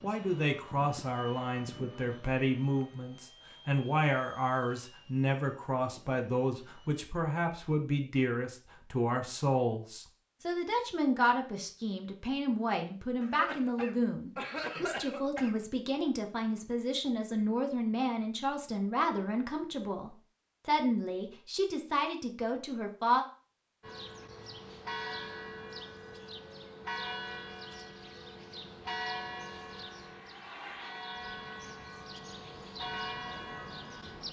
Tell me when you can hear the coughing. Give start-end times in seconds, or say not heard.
13.2-15.6.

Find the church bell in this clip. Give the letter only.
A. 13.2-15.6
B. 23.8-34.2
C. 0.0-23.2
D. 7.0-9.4
B.